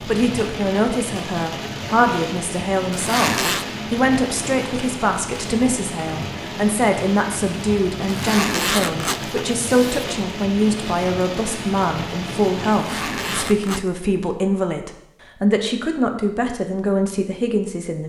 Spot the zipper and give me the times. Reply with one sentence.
The zipper can be heard from 2.9 to 3.6 s, from 8.1 to 10.1 s and from 12.7 to 13.9 s.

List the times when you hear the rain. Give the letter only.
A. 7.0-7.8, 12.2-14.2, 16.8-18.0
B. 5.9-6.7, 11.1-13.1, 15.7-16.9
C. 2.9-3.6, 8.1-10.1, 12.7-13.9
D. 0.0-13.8
D.